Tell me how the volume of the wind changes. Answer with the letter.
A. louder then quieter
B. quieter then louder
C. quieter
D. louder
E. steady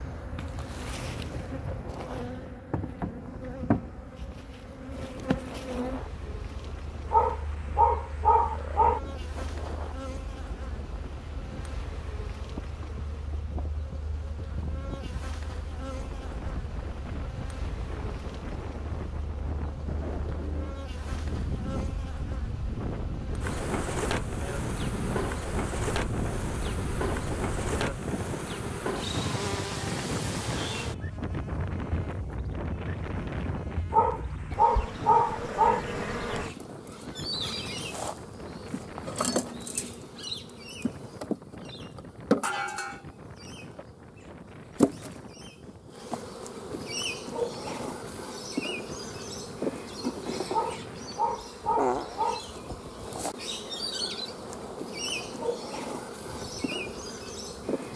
A.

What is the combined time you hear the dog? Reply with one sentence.
The dog can be heard for 6 seconds in total.